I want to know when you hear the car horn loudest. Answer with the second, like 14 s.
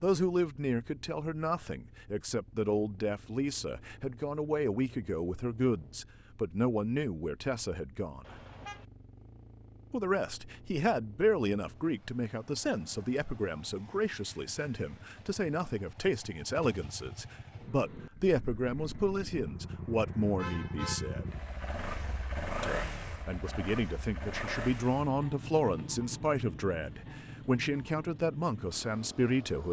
21 s.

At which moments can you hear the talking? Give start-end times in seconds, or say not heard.
0.0-8.3, 9.9-21.4, 22.6-29.6.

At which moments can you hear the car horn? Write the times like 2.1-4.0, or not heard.
8.2-8.8, 20.4-21.3.